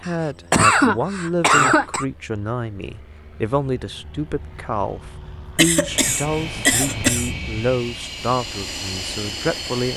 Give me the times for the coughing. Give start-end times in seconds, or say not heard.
0.1-2.0, 5.5-7.3.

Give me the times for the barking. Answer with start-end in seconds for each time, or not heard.
not heard.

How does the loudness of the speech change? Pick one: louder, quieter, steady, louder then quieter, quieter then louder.
steady.